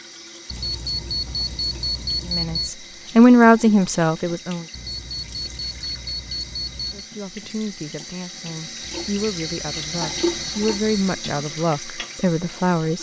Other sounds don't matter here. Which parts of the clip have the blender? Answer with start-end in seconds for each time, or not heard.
not heard.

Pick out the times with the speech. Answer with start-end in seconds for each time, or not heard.
2.2-4.7, 6.9-12.9.